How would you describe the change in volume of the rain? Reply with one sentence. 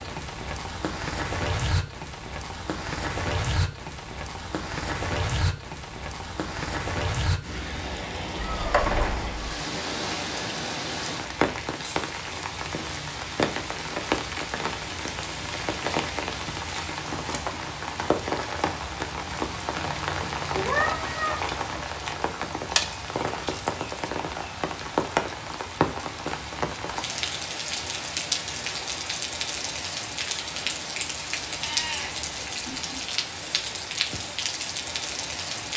The volume of the rain stays about the same.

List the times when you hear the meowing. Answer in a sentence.
The meowing can be heard from 8.4 to 9.6 s, from 20.5 to 21.4 s and from 31.5 to 33.0 s.